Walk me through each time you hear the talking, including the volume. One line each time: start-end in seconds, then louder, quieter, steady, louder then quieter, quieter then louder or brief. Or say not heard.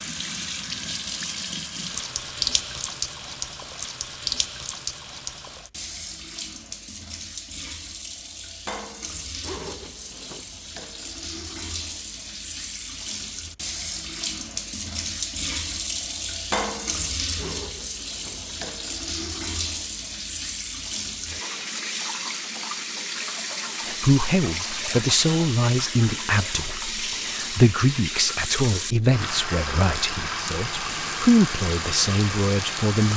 23.9-33.1 quieter then louder.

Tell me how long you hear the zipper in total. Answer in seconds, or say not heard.
2 s.